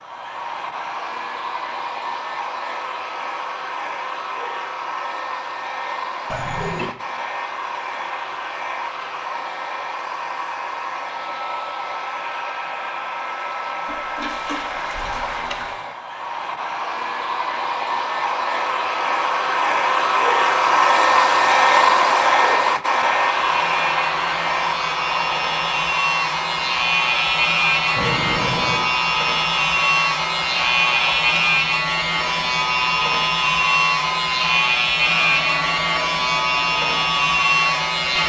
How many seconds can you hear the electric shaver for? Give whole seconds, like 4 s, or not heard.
15 s.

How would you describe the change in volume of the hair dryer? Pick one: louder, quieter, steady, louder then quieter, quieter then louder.
louder then quieter.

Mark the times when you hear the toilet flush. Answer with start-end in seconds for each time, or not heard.
6.3-6.9, 13.8-15.8, 27.9-28.9.